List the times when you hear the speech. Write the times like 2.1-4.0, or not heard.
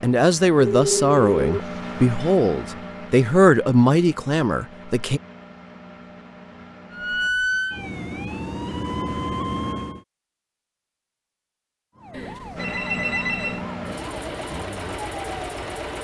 0.0-5.2.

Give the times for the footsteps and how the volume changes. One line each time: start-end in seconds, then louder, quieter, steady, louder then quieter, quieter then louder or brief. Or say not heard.
not heard.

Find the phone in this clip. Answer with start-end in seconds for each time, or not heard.
0.6-1.9, 12.1-13.6.